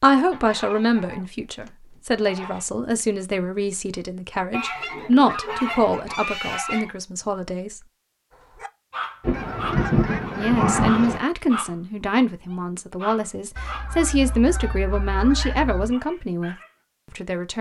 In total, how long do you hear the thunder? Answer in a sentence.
The thunder can be heard for 2 seconds in total.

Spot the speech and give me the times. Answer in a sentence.
You can hear the speech from 0.0 to 7.8 s and from 10.3 to 17.5 s.